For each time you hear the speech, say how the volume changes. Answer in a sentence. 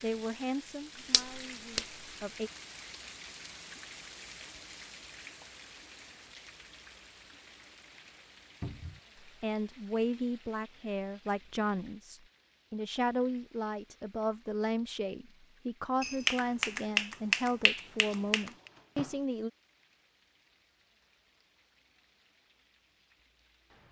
You can hear the speech briefly from 0.0 to 2.5 s; and from 9.2 to 19.5 s, at a steady volume.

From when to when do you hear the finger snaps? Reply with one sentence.
The finger snaps can be heard from 1.1 to 1.9 s and from 16.0 to 18.5 s.